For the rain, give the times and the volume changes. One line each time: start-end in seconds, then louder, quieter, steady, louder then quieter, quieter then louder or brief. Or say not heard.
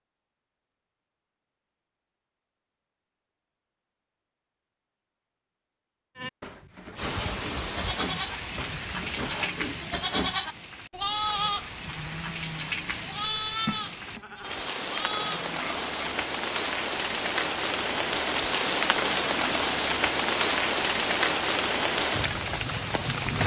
7.0-23.4 louder.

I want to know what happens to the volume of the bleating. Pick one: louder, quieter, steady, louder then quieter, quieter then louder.
louder then quieter.